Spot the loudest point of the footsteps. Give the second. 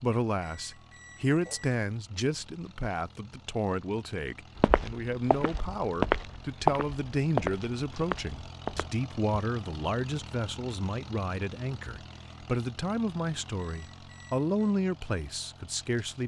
7 s.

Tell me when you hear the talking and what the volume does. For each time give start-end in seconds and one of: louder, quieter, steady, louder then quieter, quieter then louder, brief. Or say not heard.
0.0-16.2 steady.